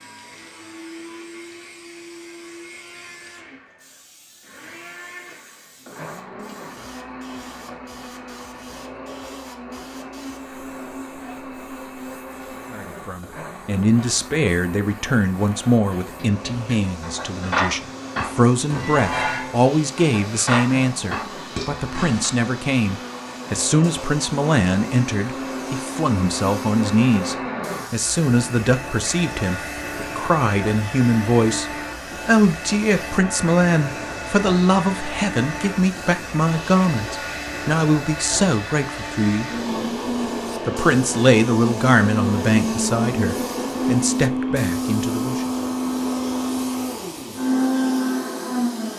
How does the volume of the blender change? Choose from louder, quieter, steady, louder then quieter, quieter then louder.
louder.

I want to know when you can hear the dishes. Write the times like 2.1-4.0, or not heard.
16.0-22.3.